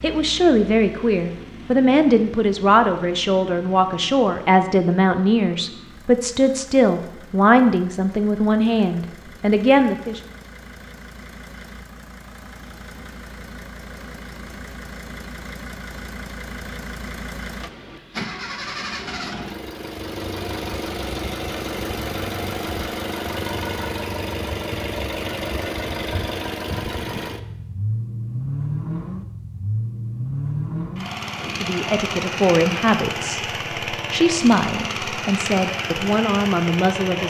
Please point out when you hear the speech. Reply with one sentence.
You can hear the speech from 0.0 to 10.2 s and from 31.4 to 37.2 s.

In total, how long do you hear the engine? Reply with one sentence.
The engine can be heard for 37 seconds in total.